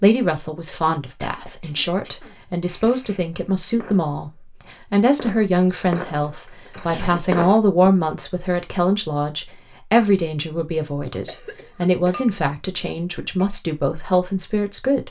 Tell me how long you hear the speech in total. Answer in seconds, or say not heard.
15 s.